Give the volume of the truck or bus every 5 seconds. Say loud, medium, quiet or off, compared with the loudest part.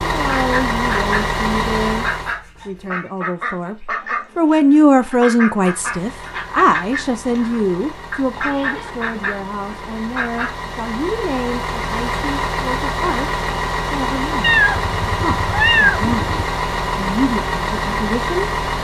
loud, quiet, loud, loud.